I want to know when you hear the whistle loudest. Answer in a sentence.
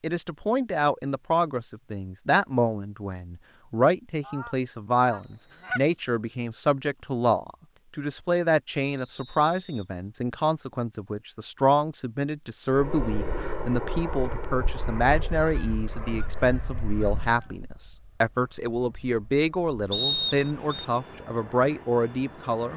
The volume of the whistle peaks at 20 seconds.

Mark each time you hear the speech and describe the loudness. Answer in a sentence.
The speech can be heard from 0.0 to 22.7 s, at a steady volume.